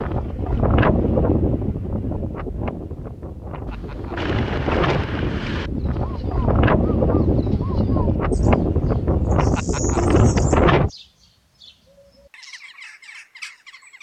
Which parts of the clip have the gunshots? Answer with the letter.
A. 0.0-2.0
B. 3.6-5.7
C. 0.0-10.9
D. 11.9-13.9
B.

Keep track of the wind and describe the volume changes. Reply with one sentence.
The loudness of the wind goes down, then up.